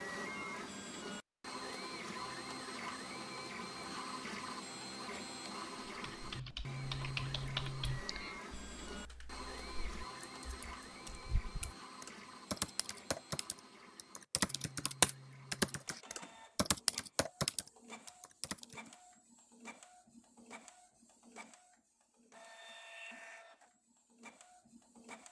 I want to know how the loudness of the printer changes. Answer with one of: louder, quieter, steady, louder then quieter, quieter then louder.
quieter.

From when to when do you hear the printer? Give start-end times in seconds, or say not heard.
0.0-25.2.